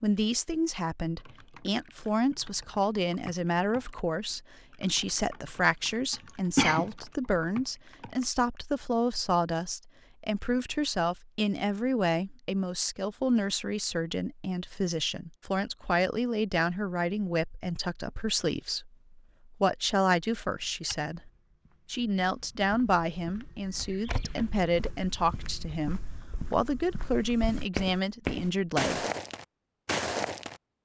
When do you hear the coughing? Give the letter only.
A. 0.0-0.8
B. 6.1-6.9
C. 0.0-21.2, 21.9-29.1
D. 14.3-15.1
B.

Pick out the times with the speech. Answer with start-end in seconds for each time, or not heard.
0.0-21.2, 21.9-29.1.